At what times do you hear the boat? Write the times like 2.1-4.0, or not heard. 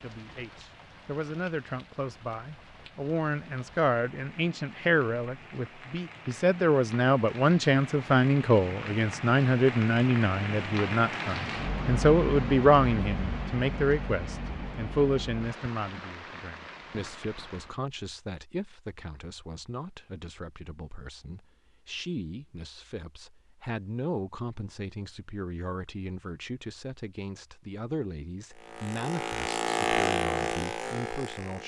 28.5-31.6.